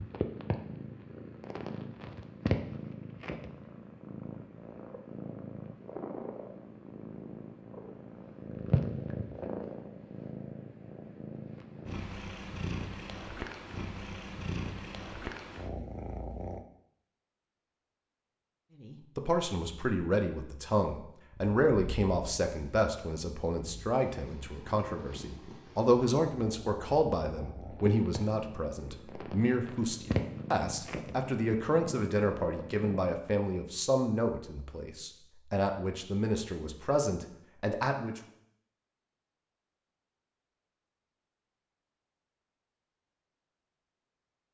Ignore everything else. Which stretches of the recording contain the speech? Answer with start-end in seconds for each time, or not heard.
18.8-38.2.